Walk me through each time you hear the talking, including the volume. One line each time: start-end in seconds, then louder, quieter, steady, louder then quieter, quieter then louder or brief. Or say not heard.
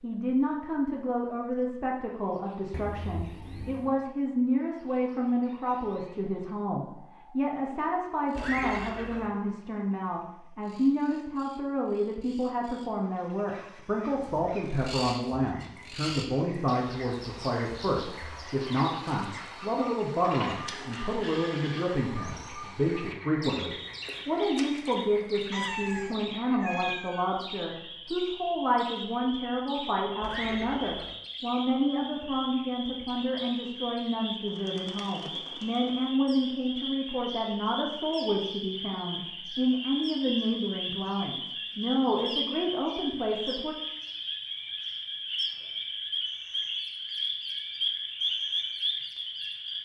0.0-43.8 steady.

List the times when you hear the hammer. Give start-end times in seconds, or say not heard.
not heard.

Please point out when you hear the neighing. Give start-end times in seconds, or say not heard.
8.3-9.3, 30.2-31.1.